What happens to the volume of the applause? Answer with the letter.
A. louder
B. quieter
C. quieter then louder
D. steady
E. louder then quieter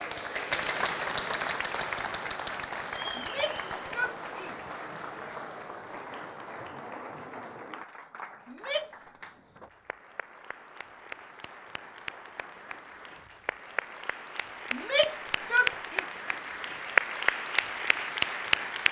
C.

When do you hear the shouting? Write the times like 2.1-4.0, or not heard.
3.1-4.5, 8.4-9.1, 14.7-16.1.